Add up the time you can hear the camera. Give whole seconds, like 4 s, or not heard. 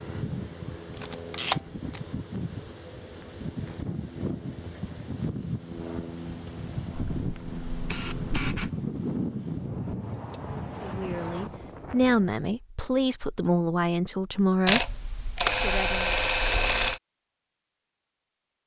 5 s.